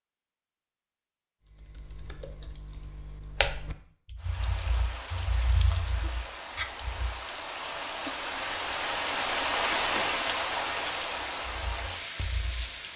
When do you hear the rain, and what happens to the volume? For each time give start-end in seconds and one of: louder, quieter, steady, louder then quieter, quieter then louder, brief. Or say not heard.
4.2-12.9 louder then quieter.